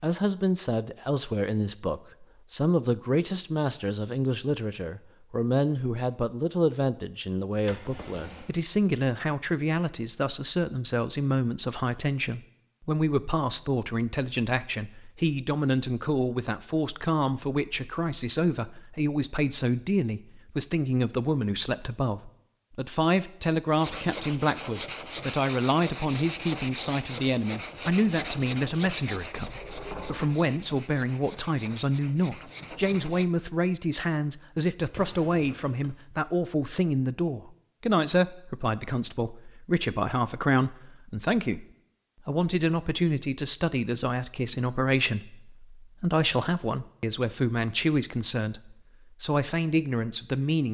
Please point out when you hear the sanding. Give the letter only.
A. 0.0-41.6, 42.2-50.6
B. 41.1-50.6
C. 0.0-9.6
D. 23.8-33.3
D.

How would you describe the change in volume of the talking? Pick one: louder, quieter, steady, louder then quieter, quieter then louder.
steady.